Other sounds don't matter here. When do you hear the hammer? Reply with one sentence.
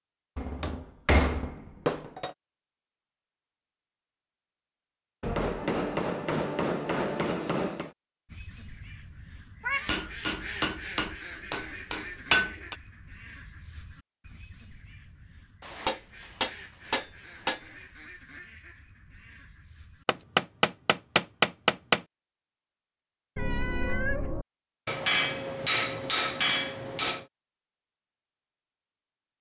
You can hear the hammer from 0.3 to 2.4 s, from 5.2 to 7.9 s, from 9.8 to 12.8 s, from 15.6 to 17.6 s, from 20.1 to 22.1 s and from 24.9 to 27.2 s.